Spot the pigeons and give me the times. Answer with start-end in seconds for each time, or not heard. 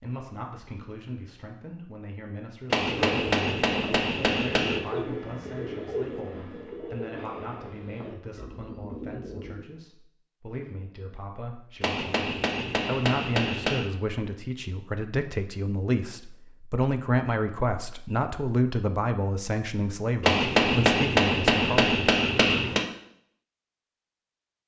2.8-9.7.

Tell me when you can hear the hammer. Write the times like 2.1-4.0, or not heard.
2.7-4.8, 11.8-13.9, 20.2-22.9.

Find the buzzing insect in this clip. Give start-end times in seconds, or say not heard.
not heard.